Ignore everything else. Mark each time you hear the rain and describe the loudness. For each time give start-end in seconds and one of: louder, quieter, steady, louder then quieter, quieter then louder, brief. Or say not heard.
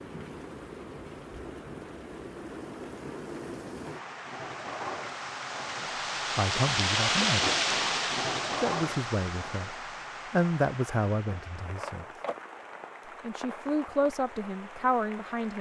0.0-15.5 louder then quieter.